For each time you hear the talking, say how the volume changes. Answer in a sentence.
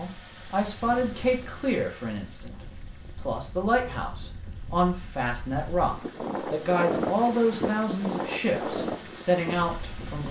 You can hear the talking briefly from 0.0 to 2.5 s; and from 3.1 to 10.2 s, at a steady volume.